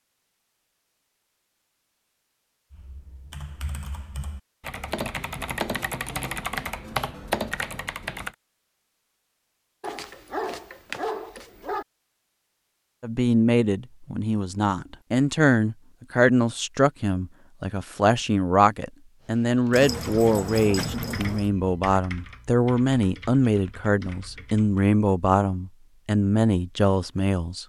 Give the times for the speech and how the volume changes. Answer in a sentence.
You can hear the speech from 13.0 to 27.6 s, at a steady volume.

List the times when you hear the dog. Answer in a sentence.
The dog can be heard from 9.8 to 11.8 s and from 19.7 to 21.5 s.